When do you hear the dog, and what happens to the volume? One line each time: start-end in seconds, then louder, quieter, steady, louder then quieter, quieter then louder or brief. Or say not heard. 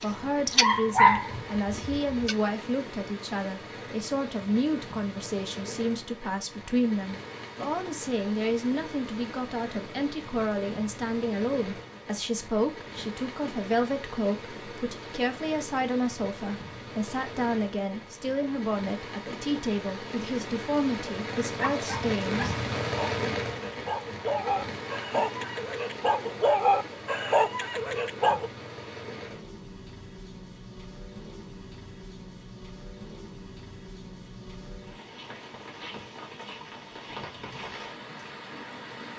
0.0-2.4 brief
21.6-28.5 louder.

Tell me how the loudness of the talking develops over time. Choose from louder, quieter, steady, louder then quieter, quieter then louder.
steady.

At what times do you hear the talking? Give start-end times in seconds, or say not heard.
0.0-22.6.